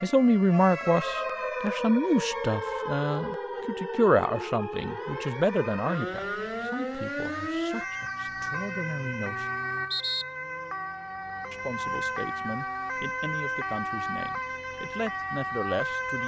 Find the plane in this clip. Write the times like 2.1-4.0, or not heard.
not heard.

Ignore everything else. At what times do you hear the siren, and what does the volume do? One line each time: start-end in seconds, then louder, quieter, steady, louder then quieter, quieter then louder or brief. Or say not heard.
0.0-16.2 steady.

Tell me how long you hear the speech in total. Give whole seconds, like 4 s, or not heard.
14 s.